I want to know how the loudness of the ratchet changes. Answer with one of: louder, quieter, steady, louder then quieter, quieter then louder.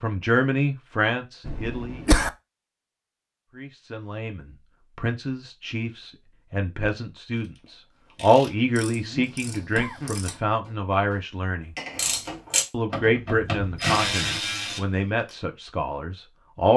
quieter then louder.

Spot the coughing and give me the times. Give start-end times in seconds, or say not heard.
1.4-2.3, 8.9-10.2.